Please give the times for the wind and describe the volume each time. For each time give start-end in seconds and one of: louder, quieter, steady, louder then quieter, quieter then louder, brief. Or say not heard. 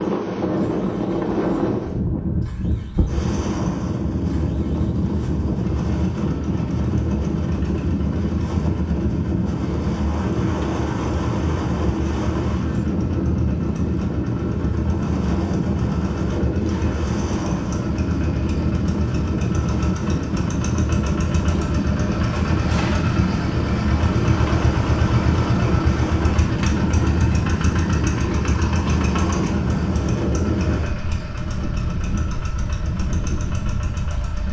0.0-34.4 steady.